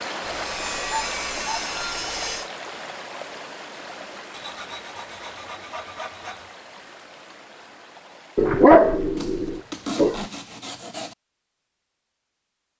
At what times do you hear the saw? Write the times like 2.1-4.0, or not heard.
0.2-2.5, 4.3-6.6, 9.2-11.2.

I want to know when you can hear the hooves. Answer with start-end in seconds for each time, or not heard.
not heard.